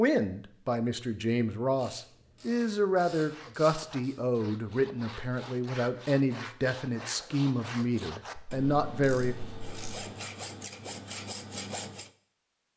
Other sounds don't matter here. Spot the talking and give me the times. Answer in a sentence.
You can hear the talking from 0.0 to 9.3 s.